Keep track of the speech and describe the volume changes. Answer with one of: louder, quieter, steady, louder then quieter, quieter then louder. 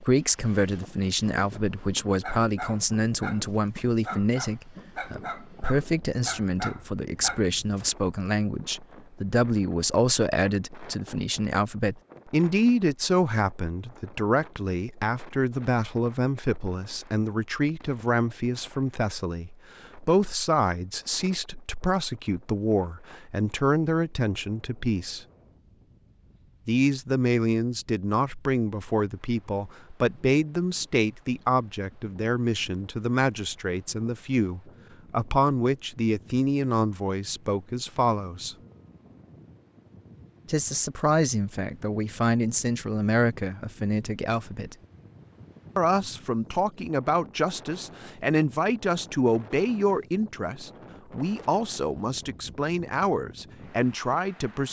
steady.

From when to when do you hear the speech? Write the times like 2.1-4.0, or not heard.
0.0-25.2, 26.6-38.5, 40.5-44.8, 45.8-54.6.